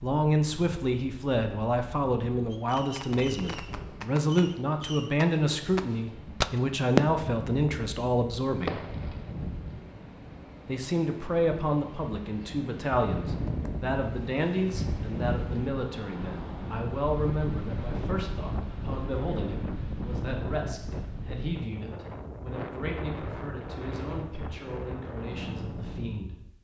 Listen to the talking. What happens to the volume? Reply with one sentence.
The loudness of the talking goes down.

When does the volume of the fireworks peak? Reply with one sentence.
The volume of the fireworks peaks at 7 seconds.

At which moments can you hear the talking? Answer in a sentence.
The talking can be heard from 0.0 to 8.8 s and from 10.7 to 26.4 s.